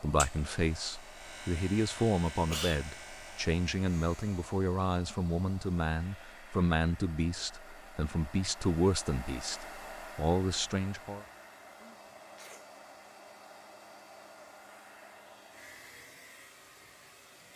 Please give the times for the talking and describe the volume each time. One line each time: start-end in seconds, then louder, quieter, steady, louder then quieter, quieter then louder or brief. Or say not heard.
0.0-11.2 steady.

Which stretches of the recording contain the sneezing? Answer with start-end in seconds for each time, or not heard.
2.4-2.9, 11.8-12.7.